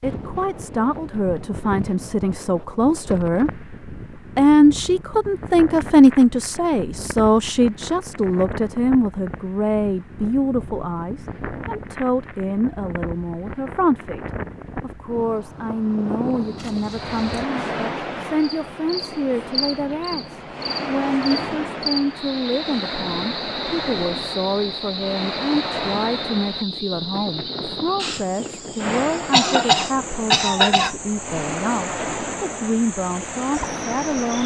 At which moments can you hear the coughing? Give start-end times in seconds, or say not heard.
29.3-30.9.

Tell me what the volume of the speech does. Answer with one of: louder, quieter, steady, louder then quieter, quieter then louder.
quieter.